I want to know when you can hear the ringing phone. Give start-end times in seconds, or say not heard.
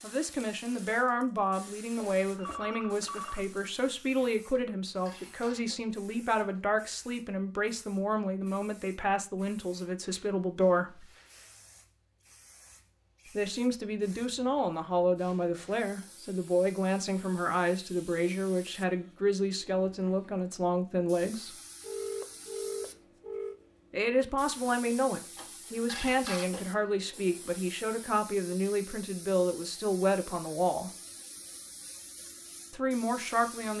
1.9-3.5, 21.8-23.6.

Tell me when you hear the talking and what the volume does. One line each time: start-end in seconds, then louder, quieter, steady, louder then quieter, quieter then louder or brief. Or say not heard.
0.0-11.1 steady
13.2-21.6 steady
23.9-30.9 steady
32.7-33.7 brief.